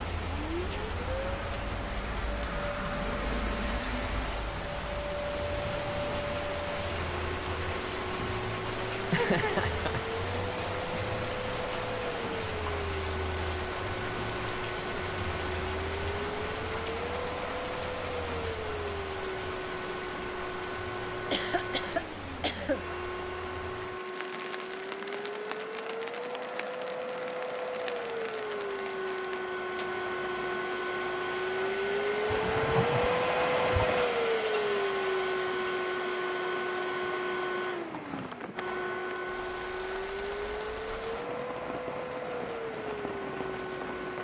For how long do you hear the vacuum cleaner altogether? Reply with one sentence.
You can hear the vacuum cleaner for 44 seconds altogether.